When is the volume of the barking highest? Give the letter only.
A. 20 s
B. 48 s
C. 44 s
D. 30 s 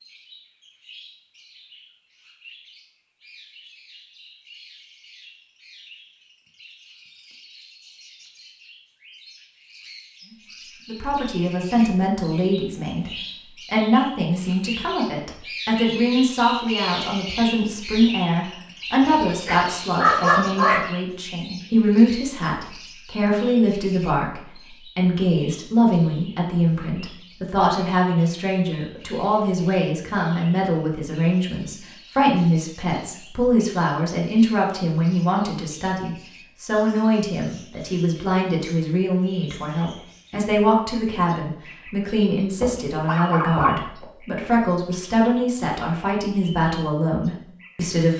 A.